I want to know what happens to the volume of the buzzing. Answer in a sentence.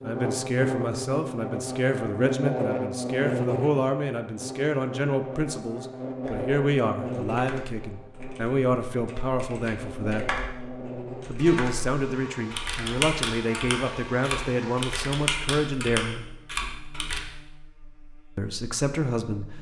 The loudness of the buzzing goes down.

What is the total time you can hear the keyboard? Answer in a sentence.
The keyboard can be heard for 11 seconds in total.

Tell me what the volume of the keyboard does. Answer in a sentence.
The loudness of the keyboard goes up.